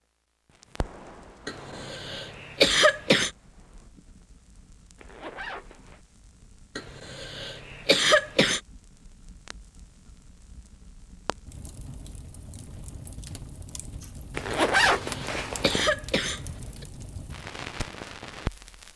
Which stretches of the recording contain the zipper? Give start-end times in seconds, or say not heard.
5.0-6.0, 14.3-15.8.